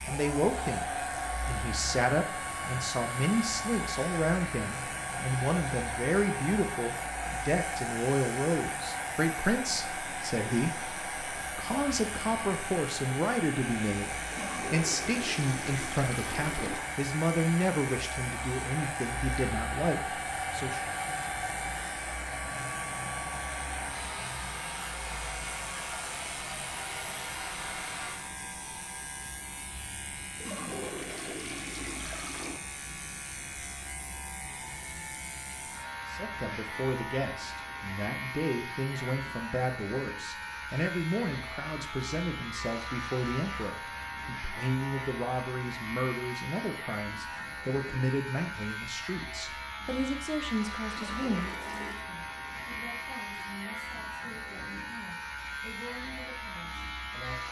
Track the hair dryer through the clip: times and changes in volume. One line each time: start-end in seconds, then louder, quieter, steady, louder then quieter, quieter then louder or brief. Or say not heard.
0.0-28.3 steady.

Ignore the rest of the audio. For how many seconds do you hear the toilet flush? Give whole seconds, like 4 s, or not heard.
6 s.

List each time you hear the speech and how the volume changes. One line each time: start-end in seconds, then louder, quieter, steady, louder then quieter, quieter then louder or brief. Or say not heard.
0.0-20.8 steady
36.0-57.4 quieter.